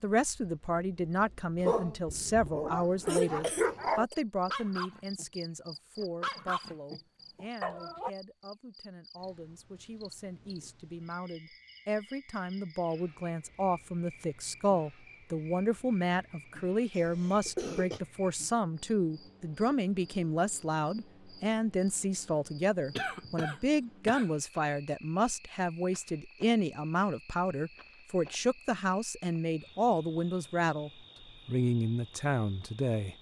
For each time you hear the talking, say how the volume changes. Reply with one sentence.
You can hear the talking from 0.0 to 33.1 s, getting quieter then louder.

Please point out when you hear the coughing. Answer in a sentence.
You can hear the coughing from 3.0 to 4.2 s, from 16.9 to 18.0 s and from 22.9 to 24.2 s.